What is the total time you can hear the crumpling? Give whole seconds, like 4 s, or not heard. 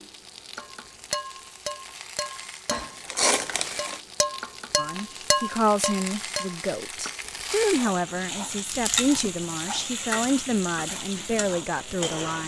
2 s.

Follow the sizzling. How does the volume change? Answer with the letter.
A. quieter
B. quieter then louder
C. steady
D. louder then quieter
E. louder
E.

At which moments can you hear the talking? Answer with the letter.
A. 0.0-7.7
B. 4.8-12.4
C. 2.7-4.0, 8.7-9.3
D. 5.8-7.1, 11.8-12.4
B.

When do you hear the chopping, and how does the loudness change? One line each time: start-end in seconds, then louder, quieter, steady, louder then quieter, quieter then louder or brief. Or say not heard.
not heard.